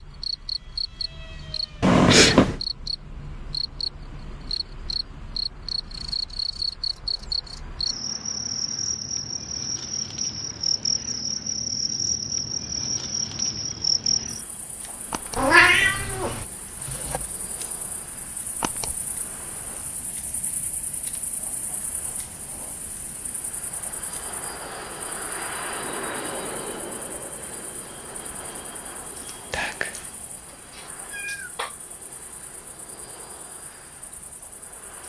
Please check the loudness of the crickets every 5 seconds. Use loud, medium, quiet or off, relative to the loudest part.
medium, loud, loud, quiet, quiet, quiet, quiet.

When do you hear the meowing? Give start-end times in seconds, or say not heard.
1.8-2.6, 15.3-16.4, 30.7-31.8.